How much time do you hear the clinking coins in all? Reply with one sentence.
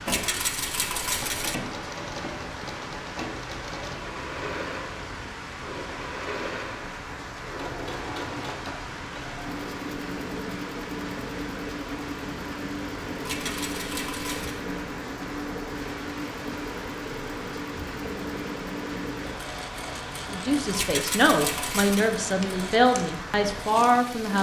The clinking coins can be heard for 4 seconds in total.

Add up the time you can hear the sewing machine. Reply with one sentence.
You can hear the sewing machine for 24 seconds altogether.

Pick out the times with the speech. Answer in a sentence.
You can hear the speech from 20.3 to 24.3 s.